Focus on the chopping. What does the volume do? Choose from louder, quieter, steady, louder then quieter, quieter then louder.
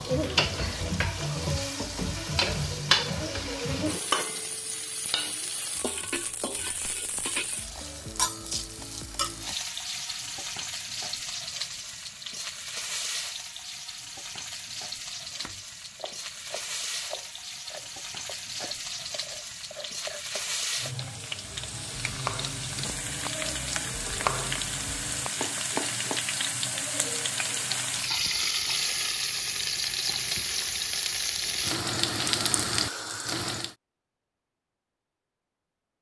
louder.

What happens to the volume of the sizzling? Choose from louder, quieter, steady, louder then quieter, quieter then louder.
quieter then louder.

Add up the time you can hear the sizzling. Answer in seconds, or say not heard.
34 s.